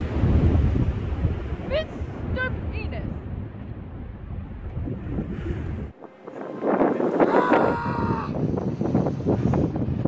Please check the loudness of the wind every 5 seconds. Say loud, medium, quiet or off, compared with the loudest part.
medium, loud.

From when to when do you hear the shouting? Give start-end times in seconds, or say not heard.
1.7-3.0, 7.2-8.4.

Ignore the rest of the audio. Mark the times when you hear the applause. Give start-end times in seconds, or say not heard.
not heard.